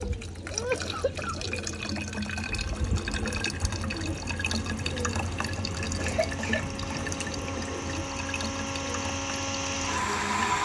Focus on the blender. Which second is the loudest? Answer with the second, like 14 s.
10 s.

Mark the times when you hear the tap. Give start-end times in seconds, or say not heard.
0.0-10.6.